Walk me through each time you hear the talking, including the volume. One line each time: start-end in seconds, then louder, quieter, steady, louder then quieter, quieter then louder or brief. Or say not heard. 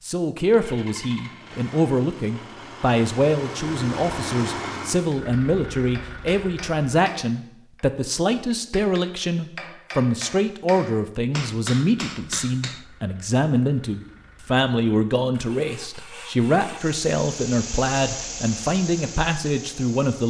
0.0-20.2 steady.